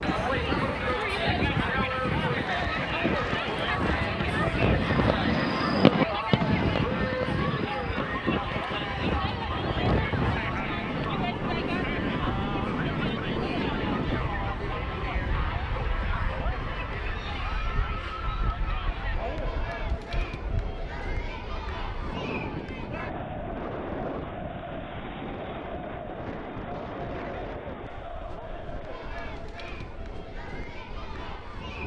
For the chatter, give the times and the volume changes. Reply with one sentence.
You can hear the chatter from 0.0 to 31.8 s, getting quieter.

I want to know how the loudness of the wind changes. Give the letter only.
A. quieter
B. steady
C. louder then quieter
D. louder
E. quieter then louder
A.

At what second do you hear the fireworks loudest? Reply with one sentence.
The volume of the fireworks peaks at 6 seconds.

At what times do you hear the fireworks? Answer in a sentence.
You can hear the fireworks from 2.2 to 8.7 s.